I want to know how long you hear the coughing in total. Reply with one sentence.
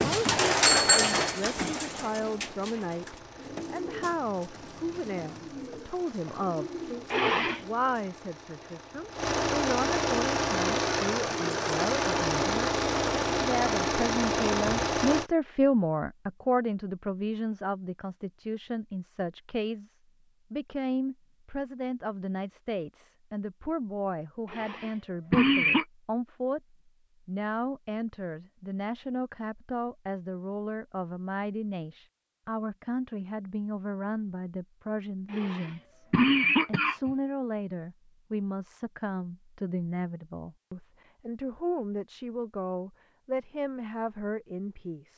The coughing can be heard for 4 seconds in total.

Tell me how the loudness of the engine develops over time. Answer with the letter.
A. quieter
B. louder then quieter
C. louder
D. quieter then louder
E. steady
C.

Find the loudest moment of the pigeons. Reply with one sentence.
The loudest moment of the pigeons is at 1 second.